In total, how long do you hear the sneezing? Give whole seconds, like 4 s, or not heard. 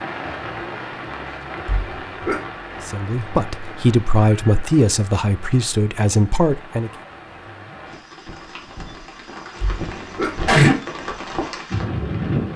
2 s.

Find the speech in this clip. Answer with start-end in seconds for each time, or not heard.
2.9-6.9.